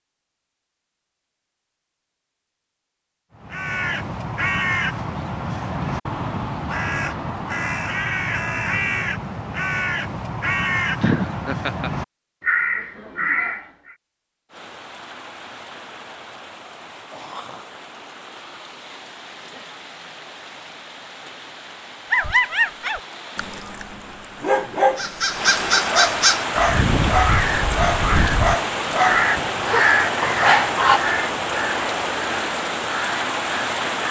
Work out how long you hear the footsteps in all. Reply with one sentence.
You can't hear the footsteps here.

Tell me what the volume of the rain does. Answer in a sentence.
The volume of the rain goes up.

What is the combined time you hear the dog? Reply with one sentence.
You can hear the dog for 9 seconds altogether.